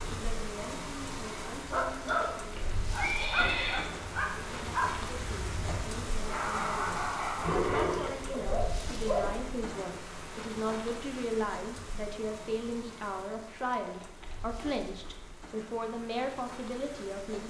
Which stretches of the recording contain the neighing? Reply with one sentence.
You can hear the neighing from 2.0 to 3.9 s, from 7.4 to 8.4 s and from 13.9 to 14.8 s.